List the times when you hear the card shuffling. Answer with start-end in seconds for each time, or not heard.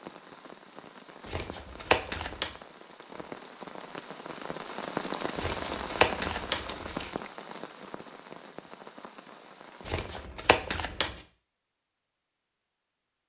1.2-2.5, 5.3-7.1, 9.8-11.2.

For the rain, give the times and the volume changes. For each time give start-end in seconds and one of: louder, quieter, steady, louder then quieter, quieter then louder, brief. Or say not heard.
0.0-10.3 louder then quieter.